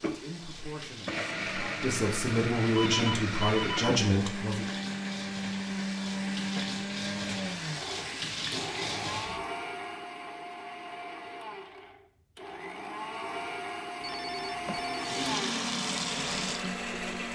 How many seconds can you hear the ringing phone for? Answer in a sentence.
You can hear the ringing phone for 3 seconds altogether.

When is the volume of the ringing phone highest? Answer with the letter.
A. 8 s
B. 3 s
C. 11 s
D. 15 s
B.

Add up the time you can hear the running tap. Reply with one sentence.
The running tap can be heard for 12 seconds in total.